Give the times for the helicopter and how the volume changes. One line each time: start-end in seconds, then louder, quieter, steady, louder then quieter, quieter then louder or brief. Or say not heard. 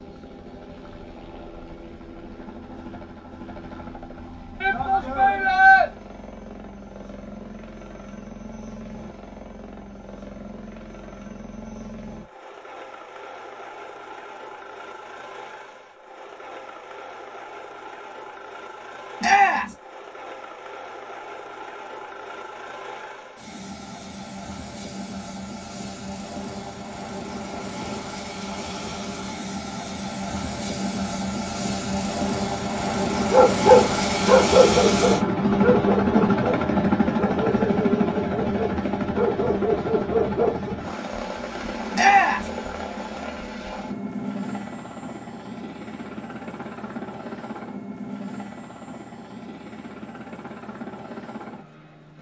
0.0-52.1 louder then quieter.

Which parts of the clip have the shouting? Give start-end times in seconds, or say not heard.
4.6-5.8, 19.2-19.8, 42.0-42.5.